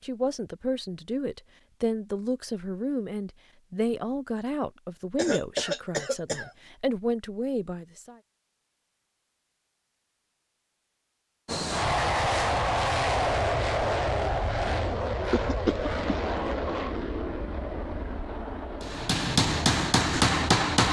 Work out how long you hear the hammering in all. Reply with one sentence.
The hammering can be heard for 2 seconds in total.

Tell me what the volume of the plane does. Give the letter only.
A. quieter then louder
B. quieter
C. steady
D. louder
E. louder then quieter
B.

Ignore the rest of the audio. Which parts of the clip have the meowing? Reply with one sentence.
The meowing can't be heard in this clip.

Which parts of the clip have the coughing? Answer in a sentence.
You can hear the coughing from 5.2 to 6.5 s and from 15.3 to 16.3 s.